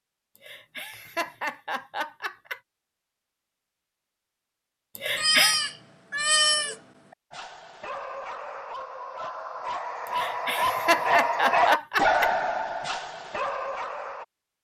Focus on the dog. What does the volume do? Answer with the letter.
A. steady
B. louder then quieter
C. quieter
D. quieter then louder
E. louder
B.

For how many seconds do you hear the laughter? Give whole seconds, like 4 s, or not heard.
5 s.